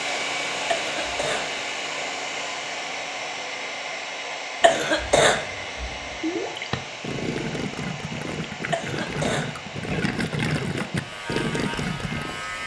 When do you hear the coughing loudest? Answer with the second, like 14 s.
5 s.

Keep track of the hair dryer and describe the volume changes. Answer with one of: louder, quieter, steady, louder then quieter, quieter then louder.
quieter.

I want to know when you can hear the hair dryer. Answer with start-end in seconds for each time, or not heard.
0.0-12.6.